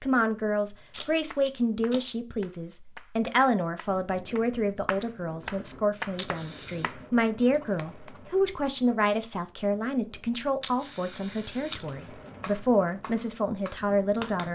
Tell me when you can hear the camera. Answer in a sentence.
The camera can be heard from 0.9 to 2.0 s, from 6.2 to 7.0 s and from 10.6 to 11.8 s.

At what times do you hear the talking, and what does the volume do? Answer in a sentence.
You can hear the talking from 0.0 to 14.5 s, at a steady volume.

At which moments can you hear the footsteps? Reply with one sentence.
You can't hear the footsteps here.